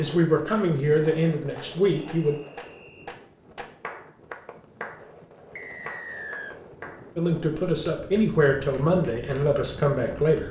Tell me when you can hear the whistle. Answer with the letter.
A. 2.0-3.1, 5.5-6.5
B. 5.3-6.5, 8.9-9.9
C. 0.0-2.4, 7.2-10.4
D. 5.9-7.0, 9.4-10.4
A.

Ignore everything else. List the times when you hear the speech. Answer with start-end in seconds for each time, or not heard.
0.0-2.4, 7.2-10.4.